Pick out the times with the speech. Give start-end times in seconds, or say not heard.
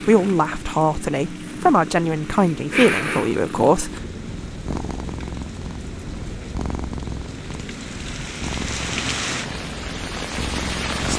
0.1-3.9.